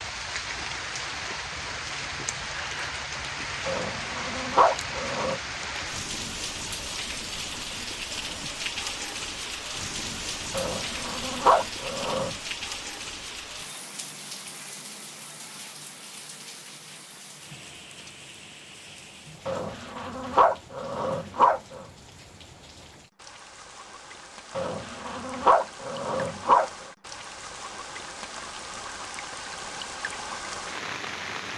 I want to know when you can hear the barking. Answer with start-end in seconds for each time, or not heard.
3.6-5.4, 10.5-12.3, 19.4-21.9, 24.6-26.7.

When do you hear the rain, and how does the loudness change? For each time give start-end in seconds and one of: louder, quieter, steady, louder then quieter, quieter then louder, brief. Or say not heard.
0.0-31.5 quieter then louder.